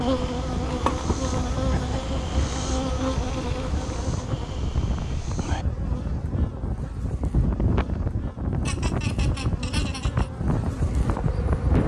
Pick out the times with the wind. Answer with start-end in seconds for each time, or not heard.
0.0-11.8.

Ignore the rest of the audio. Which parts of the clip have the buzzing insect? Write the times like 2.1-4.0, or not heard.
0.0-11.8.